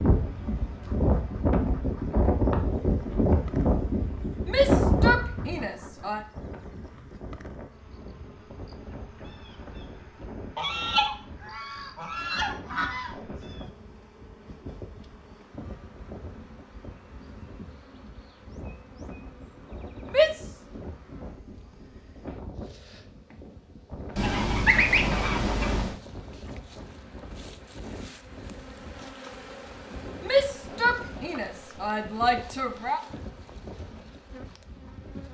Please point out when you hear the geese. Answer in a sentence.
The geese can be heard from 10.6 to 13.1 s and from 24.1 to 26.0 s.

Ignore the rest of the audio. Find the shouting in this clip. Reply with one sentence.
The shouting can be heard from 4.5 to 6.2 s, from 20.1 to 20.6 s and from 30.2 to 33.0 s.